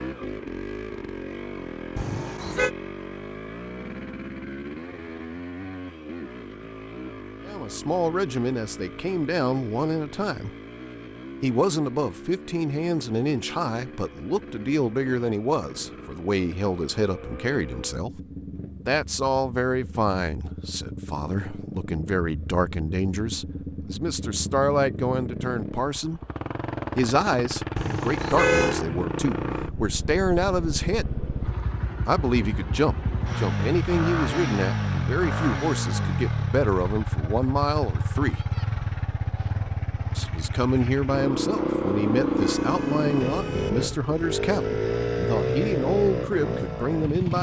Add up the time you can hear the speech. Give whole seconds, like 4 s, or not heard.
35 s.